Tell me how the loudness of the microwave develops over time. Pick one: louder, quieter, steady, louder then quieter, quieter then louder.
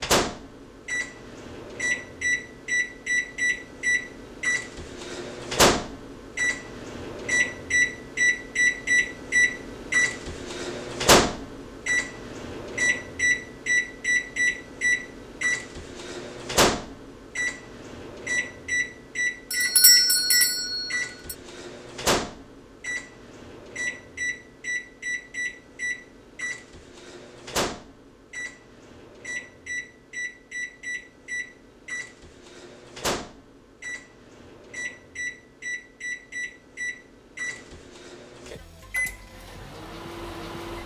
quieter.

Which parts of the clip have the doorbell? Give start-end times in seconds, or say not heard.
19.5-21.4.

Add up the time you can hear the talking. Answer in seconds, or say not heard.
not heard.